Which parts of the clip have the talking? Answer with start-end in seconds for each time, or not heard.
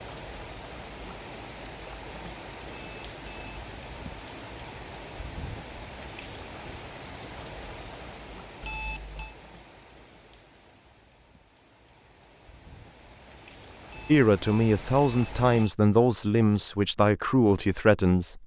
14.1-18.4.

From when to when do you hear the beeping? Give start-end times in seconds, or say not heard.
2.7-3.7, 8.6-9.3, 13.8-15.8.